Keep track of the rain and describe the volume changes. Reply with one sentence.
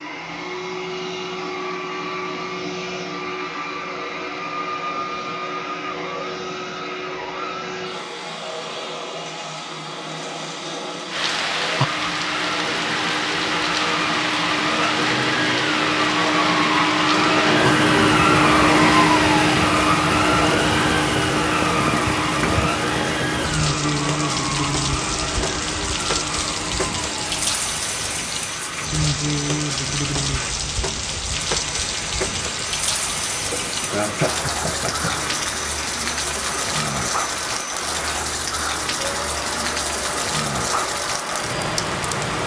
The loudness of the rain stays about the same.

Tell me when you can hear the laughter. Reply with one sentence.
The laughter can be heard from 33.5 to 35.1 s.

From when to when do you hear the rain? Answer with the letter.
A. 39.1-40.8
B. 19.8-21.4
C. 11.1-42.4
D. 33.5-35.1
C.